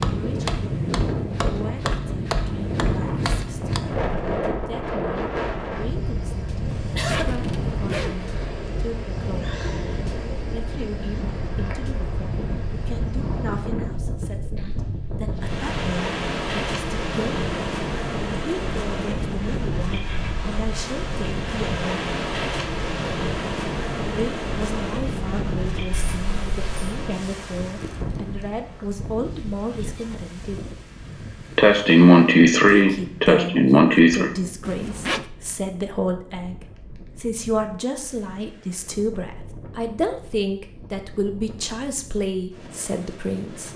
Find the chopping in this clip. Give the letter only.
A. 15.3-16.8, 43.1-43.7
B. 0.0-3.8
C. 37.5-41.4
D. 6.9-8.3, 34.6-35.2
B.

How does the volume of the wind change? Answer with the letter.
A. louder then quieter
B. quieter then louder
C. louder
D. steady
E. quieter
E.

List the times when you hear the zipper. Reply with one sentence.
You can hear the zipper from 6.9 to 8.3 s and from 34.6 to 35.2 s.